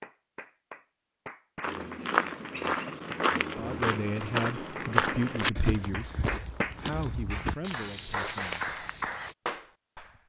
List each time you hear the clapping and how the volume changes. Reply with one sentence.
You can hear the clapping from 0.0 to 10.2 s, getting louder.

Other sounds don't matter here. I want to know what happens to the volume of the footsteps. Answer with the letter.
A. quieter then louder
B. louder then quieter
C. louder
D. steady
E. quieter
E.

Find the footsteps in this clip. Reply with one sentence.
You can hear the footsteps from 1.6 to 9.3 s.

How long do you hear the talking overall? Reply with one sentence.
You can hear the talking for 5 seconds altogether.